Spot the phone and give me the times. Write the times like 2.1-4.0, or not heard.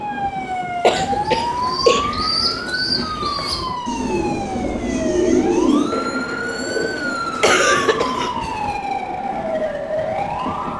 not heard.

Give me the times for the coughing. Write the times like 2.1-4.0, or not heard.
0.8-2.0, 7.4-8.8.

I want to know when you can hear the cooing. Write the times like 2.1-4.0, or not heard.
0.9-8.2.